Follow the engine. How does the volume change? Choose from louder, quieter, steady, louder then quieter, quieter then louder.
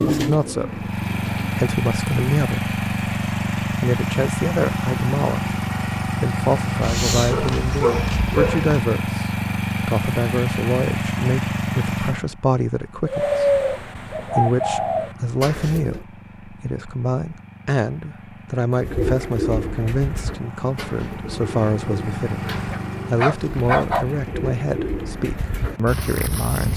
quieter then louder.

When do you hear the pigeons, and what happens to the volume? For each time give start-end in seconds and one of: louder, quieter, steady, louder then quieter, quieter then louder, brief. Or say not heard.
0.0-1.6 brief
13.1-16.0 brief
18.8-26.7 quieter then louder.